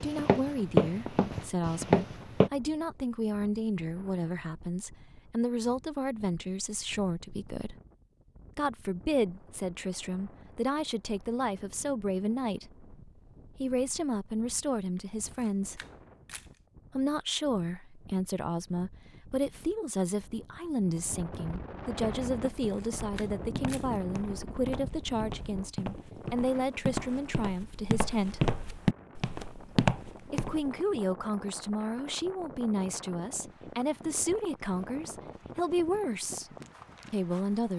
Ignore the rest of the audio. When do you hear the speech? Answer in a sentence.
The speech can be heard from 0.0 to 7.8 s, from 8.6 to 15.8 s, from 16.9 to 28.4 s, from 30.3 to 36.5 s and from 37.1 to 37.7 s.